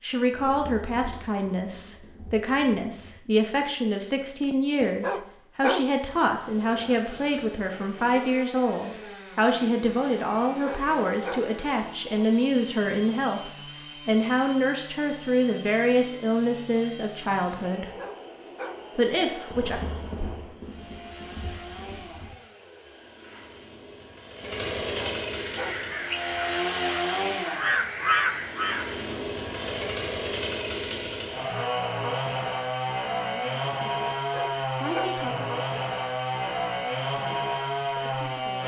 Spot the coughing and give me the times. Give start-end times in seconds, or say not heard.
not heard.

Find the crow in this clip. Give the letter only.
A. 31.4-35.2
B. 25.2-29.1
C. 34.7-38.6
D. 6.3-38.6
B.